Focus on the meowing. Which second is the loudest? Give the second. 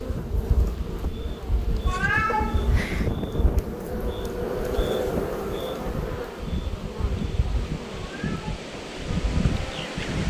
2 s.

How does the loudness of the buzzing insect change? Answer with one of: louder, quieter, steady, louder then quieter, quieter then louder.
louder then quieter.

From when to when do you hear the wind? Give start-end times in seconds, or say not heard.
0.0-10.2.